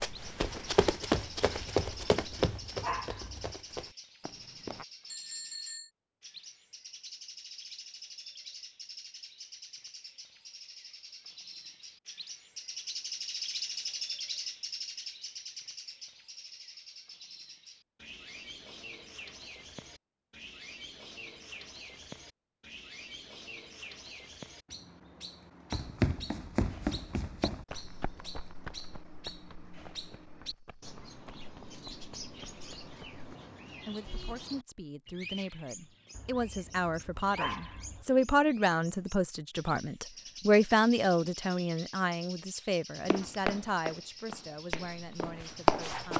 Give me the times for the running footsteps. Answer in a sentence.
You can hear the running footsteps from 0.0 to 4.8 s, from 25.7 to 33.4 s and from 43.1 to 46.1 s.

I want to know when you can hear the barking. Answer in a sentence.
You can hear the barking from 1.9 to 3.5 s and from 36.1 to 38.0 s.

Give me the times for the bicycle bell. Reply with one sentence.
You can hear the bicycle bell from 5.0 to 5.9 s.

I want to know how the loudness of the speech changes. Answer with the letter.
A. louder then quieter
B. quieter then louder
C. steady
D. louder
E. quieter
A.